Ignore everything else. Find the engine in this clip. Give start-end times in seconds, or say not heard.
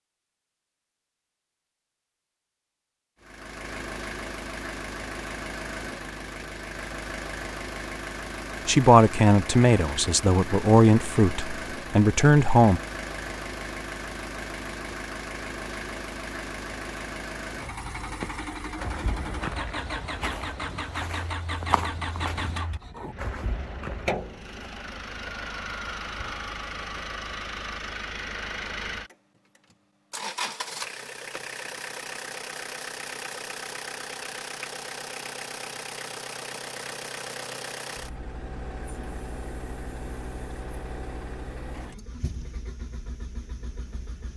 3.2-44.3.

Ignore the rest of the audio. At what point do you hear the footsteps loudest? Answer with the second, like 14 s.
22 s.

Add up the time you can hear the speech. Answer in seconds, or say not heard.
4 s.